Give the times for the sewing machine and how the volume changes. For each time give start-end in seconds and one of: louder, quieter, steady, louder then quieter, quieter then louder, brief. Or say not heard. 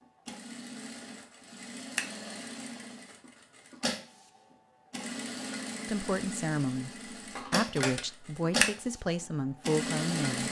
0.0-10.4 louder.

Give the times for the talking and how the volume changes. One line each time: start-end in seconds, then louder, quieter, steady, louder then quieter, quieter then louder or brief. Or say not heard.
5.8-10.4 steady.